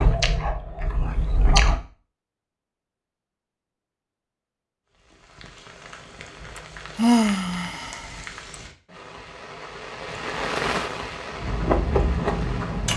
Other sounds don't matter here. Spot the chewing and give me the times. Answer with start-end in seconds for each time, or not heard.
0.0-1.8, 11.3-12.9.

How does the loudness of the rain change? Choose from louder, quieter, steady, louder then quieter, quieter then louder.
louder then quieter.